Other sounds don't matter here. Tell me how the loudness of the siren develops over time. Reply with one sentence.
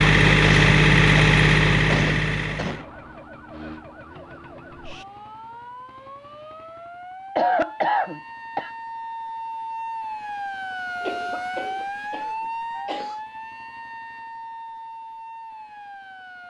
The loudness of the siren goes up, then down.